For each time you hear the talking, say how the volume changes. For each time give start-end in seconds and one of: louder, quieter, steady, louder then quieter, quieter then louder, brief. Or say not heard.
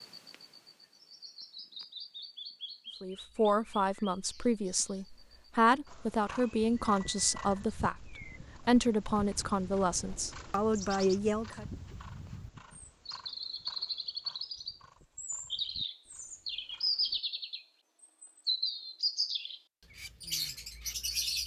3.0-11.7 steady.